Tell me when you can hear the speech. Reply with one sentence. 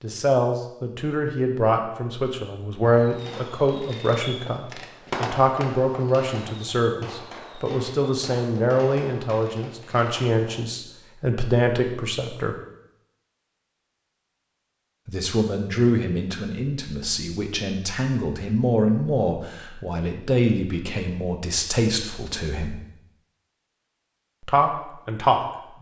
The speech can be heard from 0.0 to 12.6 s, from 15.1 to 22.8 s and from 24.4 to 25.7 s.